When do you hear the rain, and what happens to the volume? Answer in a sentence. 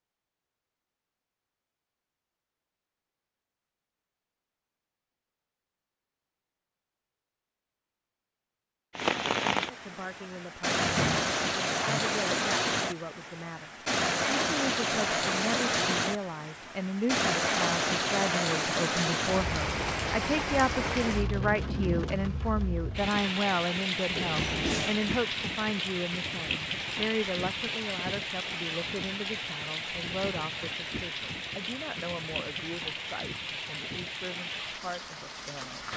You can hear the rain from 8.9 to 35.9 s, getting quieter.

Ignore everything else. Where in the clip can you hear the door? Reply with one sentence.
You can hear the door from 10.7 to 12.0 s and from 24.1 to 25.1 s.